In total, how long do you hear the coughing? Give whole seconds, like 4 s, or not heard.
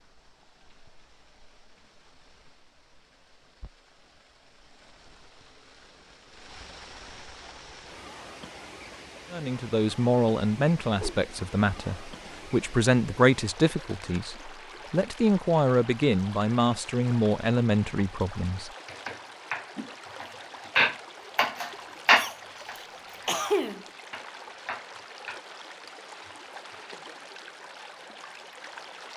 2 s.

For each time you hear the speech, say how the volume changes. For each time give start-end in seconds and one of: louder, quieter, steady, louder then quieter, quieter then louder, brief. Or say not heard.
9.3-18.7 steady.